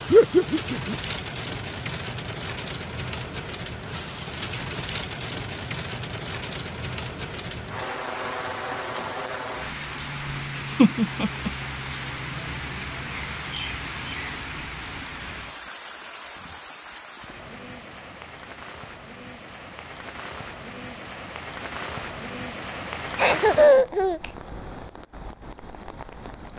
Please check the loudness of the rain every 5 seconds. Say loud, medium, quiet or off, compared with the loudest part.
loud, loud, loud, medium, loud, medium.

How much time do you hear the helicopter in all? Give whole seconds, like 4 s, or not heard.
not heard.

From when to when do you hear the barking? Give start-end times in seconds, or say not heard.
not heard.